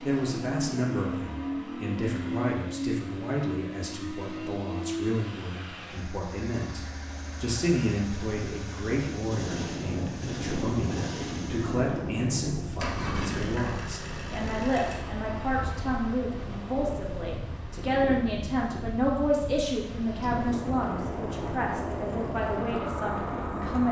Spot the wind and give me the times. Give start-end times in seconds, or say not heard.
9.2-23.8.